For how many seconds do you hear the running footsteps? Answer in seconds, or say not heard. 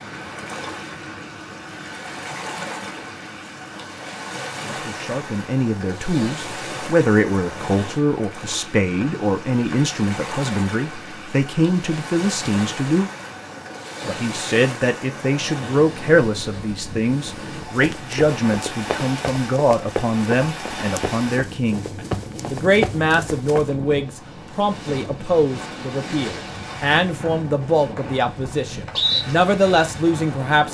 6 s.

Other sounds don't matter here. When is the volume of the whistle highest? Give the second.
29 s.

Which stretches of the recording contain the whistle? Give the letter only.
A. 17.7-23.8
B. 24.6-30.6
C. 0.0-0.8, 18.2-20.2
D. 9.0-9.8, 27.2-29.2
D.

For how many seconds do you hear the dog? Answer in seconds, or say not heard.
not heard.